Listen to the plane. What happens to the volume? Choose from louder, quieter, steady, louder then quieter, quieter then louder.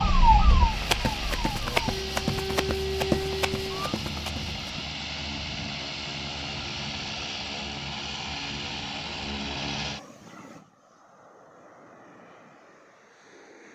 quieter.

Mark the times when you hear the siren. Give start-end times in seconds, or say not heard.
0.0-4.0.